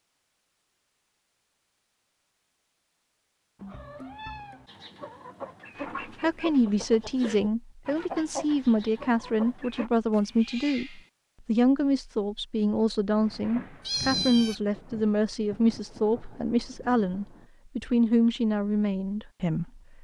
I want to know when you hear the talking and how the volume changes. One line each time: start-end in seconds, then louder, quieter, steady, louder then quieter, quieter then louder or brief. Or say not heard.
6.2-19.9 steady.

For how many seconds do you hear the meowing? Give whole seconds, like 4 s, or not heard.
3 s.